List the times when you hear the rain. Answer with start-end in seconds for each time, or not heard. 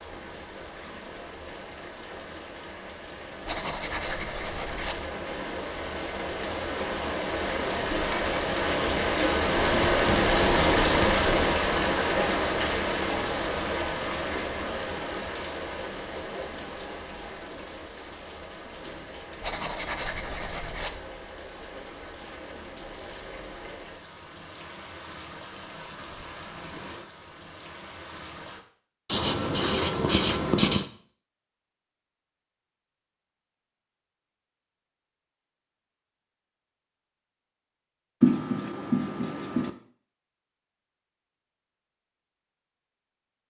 0.0-28.6.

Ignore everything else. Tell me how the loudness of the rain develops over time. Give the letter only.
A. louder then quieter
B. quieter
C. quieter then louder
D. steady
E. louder
A.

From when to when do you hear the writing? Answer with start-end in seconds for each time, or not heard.
3.5-5.0, 9.6-11.3, 19.4-21.0, 29.1-30.9, 38.2-39.7.